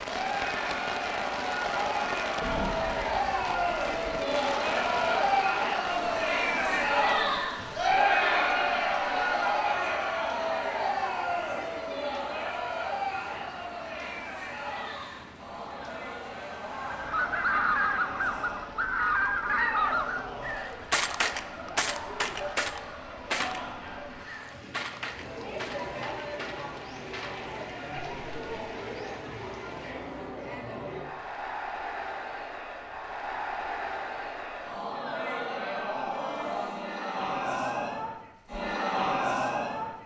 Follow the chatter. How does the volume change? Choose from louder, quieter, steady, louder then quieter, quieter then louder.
quieter then louder.